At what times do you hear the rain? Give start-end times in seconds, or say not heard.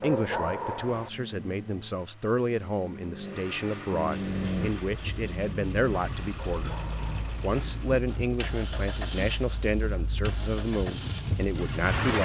4.4-12.1.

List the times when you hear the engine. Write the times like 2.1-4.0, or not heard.
0.1-11.9.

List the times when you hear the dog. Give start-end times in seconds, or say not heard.
0.0-1.1, 6.5-7.5.